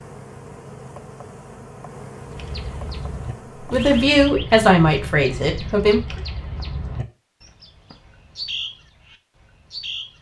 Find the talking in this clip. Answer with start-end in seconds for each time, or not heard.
3.7-6.2.